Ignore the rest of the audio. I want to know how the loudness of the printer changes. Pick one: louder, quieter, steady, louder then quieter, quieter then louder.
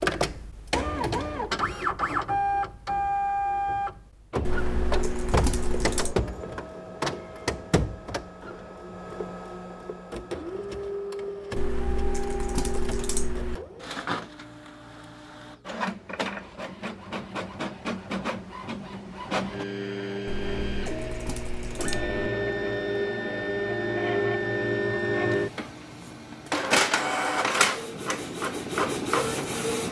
quieter then louder.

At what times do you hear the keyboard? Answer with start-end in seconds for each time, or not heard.
4.4-6.2, 11.6-13.6, 20.2-22.1.